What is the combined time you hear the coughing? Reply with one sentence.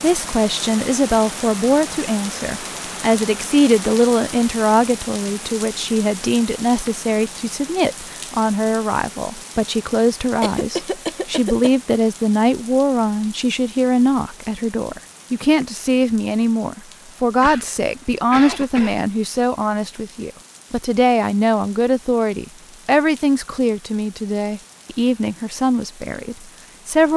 You can hear the coughing for 3 seconds altogether.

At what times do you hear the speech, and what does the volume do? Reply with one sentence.
The speech can be heard from 0.0 to 27.1 s, at a steady volume.